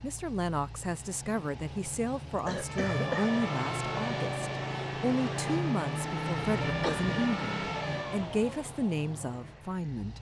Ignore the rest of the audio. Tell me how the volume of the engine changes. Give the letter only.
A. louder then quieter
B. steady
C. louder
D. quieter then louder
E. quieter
A.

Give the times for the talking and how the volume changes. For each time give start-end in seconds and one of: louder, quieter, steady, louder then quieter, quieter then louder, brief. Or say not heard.
0.0-10.1 steady.